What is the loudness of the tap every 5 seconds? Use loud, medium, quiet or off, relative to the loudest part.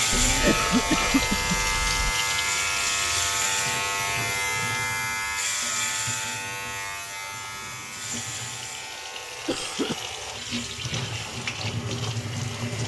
loud, medium, loud.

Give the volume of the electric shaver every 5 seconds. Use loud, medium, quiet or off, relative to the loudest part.
loud, medium, quiet.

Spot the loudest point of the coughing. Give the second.
1 s.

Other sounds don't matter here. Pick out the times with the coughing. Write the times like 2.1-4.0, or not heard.
0.1-2.1, 9.2-9.9.